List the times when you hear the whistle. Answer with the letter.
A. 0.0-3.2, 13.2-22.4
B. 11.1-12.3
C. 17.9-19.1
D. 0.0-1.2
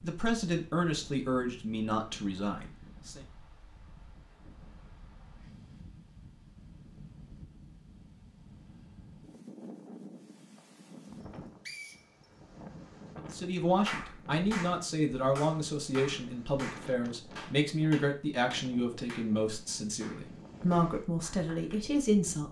B.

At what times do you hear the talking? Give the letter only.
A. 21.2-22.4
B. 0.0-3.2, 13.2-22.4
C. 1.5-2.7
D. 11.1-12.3
B.